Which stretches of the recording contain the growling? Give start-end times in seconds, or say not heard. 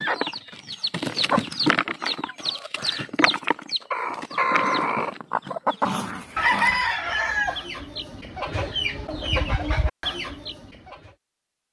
5.8-6.8.